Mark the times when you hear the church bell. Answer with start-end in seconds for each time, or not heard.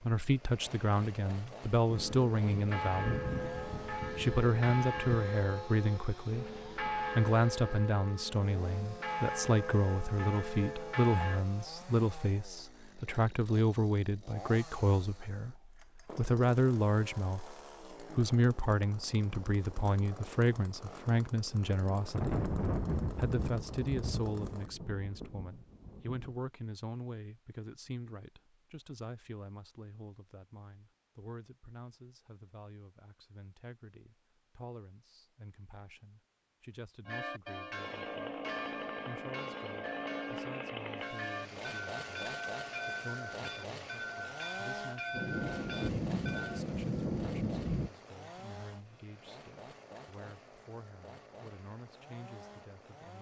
1.9-11.4, 37.0-46.6.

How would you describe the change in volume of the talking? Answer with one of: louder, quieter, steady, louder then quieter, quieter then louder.
quieter.